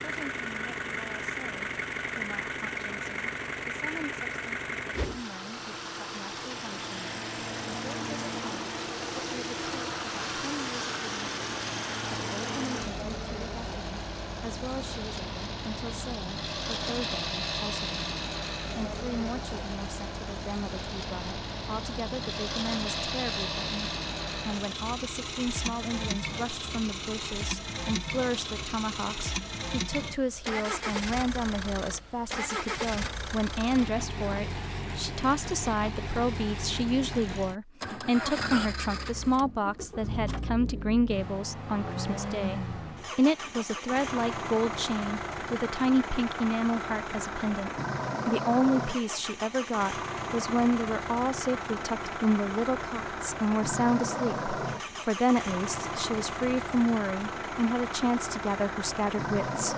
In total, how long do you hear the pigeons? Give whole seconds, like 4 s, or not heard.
not heard.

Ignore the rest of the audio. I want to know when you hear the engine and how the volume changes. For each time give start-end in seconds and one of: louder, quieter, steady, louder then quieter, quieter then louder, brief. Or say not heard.
0.0-59.7 steady.